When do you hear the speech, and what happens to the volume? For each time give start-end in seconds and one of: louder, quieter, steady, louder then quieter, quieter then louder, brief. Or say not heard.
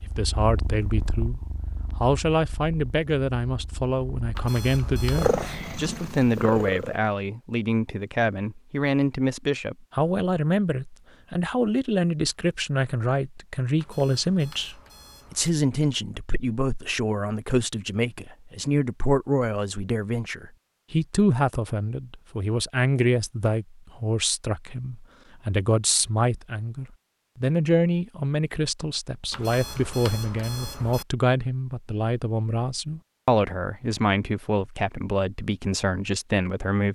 0.1-36.9 steady.